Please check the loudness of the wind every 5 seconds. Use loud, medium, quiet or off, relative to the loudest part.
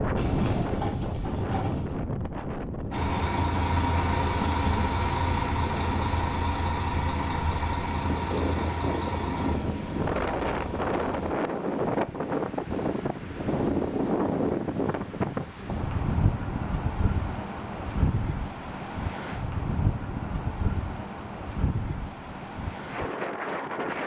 loud, medium, loud, loud, medium.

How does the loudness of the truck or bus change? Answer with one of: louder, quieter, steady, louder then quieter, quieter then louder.
quieter.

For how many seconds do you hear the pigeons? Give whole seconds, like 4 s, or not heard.
2 s.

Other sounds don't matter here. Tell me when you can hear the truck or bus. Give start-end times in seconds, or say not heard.
2.9-11.3.